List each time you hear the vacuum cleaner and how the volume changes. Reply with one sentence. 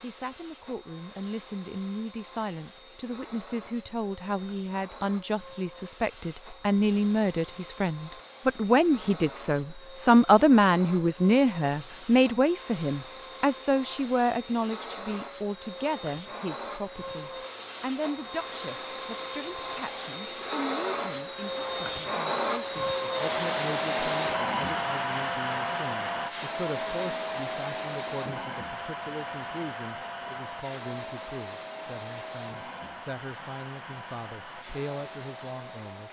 The vacuum cleaner can be heard from 0.0 to 36.0 s, getting louder then quieter.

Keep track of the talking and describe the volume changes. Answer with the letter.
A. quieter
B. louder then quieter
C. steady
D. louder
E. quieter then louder
B.